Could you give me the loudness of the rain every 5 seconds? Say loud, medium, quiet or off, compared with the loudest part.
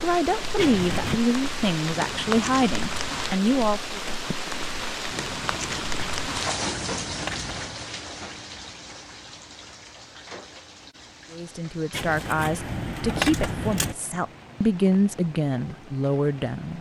loud, loud, quiet, quiet.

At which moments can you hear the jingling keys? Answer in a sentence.
The jingling keys can be heard from 0.6 to 1.2 s, from 6.0 to 7.8 s and from 11.9 to 13.9 s.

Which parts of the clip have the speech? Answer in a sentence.
The speech can be heard from 0.0 to 4.0 s and from 11.3 to 16.7 s.